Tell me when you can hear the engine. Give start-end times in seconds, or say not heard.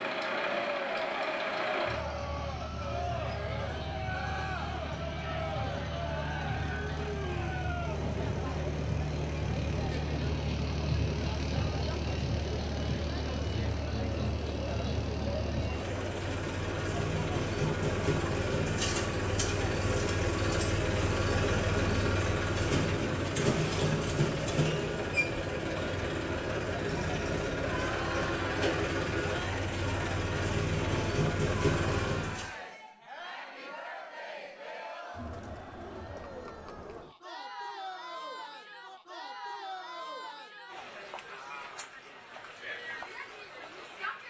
0.0-32.5.